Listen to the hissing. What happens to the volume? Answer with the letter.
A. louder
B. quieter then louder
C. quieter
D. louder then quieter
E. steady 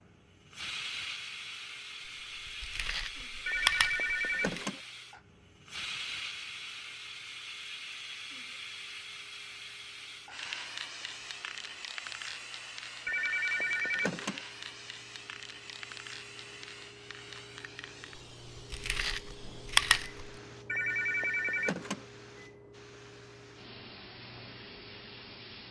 C.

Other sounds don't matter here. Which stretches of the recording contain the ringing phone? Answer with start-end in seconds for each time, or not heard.
3.5-4.8, 13.1-14.4, 20.6-22.1.